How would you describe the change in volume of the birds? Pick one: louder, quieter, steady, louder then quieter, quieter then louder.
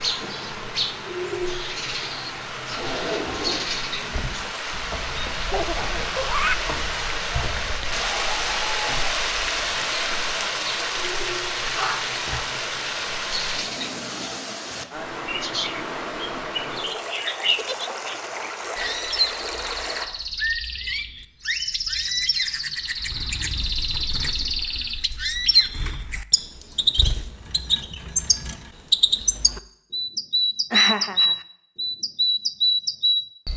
quieter then louder.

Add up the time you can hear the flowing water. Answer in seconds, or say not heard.
20 s.